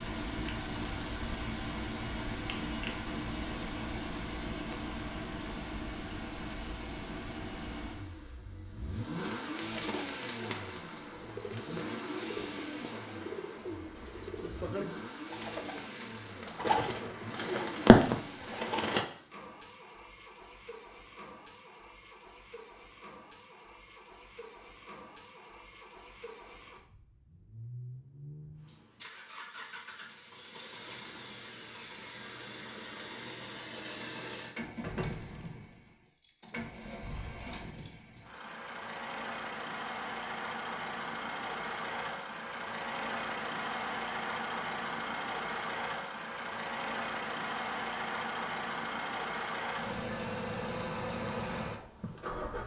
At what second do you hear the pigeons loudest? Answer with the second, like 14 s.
18 s.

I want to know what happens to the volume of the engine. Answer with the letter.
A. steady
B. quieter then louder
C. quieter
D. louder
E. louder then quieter
B.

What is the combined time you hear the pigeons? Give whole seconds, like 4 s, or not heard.
10 s.